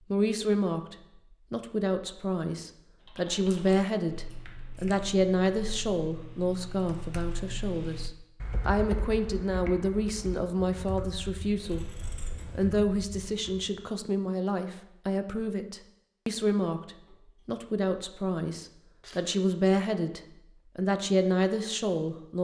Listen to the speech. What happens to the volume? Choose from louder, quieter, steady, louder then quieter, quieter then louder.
steady.